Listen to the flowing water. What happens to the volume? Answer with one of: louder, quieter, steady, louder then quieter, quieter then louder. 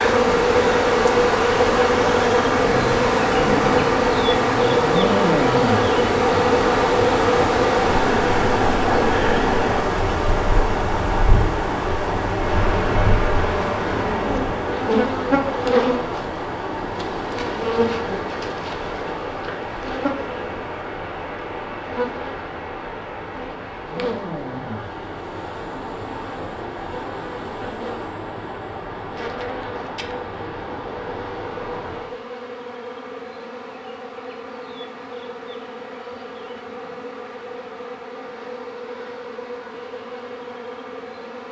quieter.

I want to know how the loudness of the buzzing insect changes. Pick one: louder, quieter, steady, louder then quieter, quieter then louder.
quieter.